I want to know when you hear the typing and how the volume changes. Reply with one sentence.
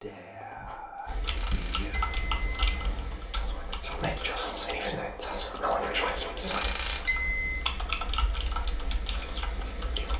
You can hear the typing from 1.1 to 10.1 s, getting quieter then louder.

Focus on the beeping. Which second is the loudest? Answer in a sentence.
The loudest moment of the beeping is at 7 seconds.